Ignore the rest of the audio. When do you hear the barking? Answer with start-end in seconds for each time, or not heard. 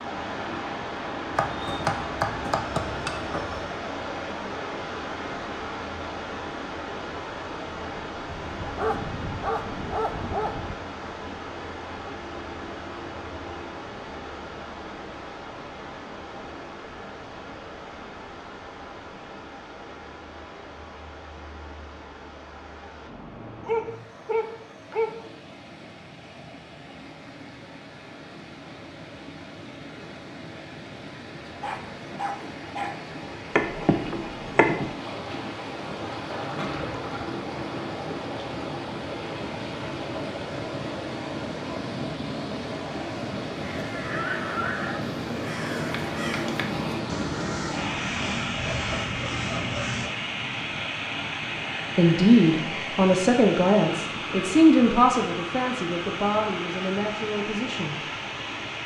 8.2-10.8, 23.6-25.2, 31.6-33.0, 48.5-50.1.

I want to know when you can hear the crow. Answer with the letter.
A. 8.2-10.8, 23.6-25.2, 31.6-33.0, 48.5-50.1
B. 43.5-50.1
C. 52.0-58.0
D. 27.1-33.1
B.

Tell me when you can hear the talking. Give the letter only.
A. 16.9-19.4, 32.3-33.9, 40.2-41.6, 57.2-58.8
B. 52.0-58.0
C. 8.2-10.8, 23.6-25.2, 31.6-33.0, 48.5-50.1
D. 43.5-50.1
B.